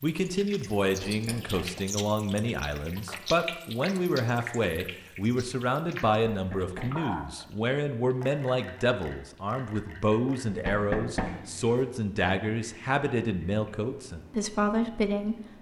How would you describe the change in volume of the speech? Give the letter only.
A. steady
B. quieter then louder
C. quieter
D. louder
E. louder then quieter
A.